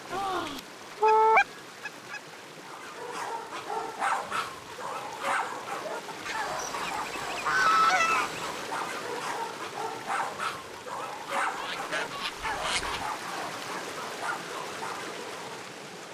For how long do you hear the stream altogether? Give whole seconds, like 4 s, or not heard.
16 s.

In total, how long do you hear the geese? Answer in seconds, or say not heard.
6 s.